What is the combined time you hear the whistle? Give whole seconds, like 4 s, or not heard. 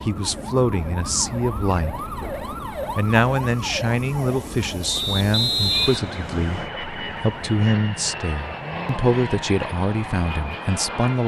2 s.